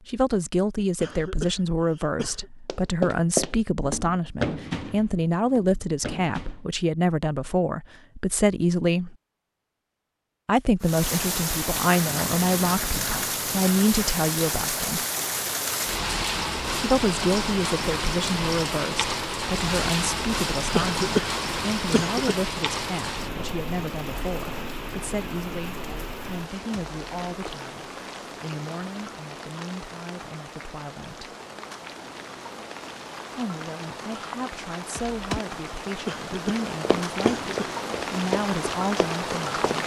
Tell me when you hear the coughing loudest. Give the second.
21 s.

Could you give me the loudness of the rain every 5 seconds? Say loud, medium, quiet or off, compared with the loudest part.
off, off, loud, loud, loud, medium, medium, loud.